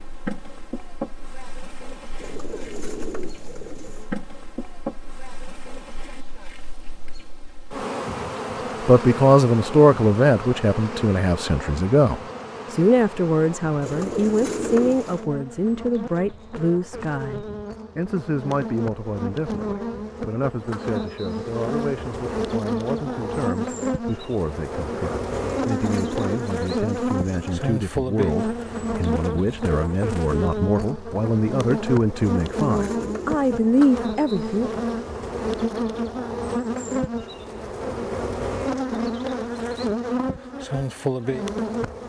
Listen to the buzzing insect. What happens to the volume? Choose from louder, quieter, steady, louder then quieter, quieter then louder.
louder.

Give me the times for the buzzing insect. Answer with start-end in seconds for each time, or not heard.
0.0-42.0.